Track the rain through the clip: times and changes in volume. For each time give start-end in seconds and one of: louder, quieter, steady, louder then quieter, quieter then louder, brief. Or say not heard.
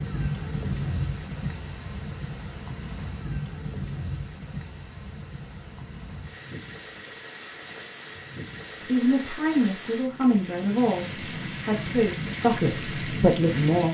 0.0-13.8 quieter then louder.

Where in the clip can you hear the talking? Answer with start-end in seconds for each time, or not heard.
8.8-13.8.